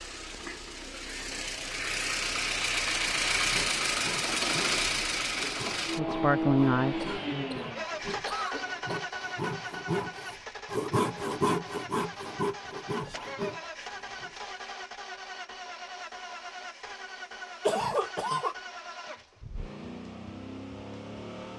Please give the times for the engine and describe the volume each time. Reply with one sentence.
You can hear the engine from 0.0 to 21.5 s, getting quieter.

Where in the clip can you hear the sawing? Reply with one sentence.
You can hear the sawing from 3.4 to 14.3 s.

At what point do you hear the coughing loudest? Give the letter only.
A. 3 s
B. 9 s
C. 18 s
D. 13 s
C.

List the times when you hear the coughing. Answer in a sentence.
You can hear the coughing from 7.0 to 9.0 s and from 17.6 to 18.6 s.